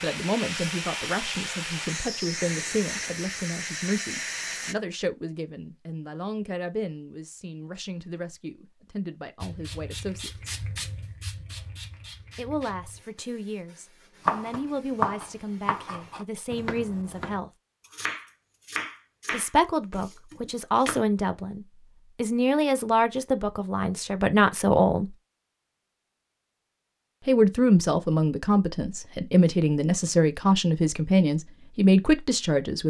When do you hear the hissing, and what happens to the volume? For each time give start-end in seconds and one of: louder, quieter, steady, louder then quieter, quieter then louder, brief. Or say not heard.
0.0-4.8 steady
9.4-16.2 quieter.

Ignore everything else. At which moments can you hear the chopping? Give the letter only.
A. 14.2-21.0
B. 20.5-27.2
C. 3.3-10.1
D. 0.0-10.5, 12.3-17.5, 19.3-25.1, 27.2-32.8
A.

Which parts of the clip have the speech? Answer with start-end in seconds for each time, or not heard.
0.0-10.5, 12.3-17.5, 19.3-25.1, 27.2-32.8.